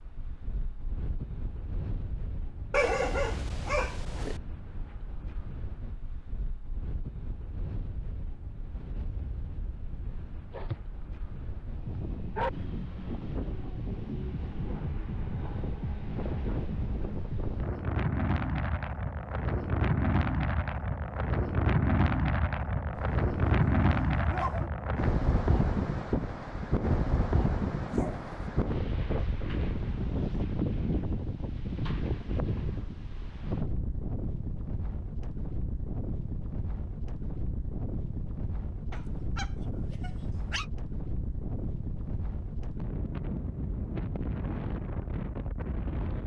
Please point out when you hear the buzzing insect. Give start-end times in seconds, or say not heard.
not heard.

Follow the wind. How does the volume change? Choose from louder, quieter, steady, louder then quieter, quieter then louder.
louder then quieter.